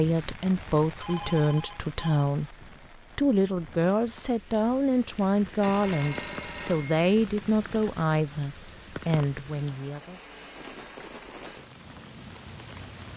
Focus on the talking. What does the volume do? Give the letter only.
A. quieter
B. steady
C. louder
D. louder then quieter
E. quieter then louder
B.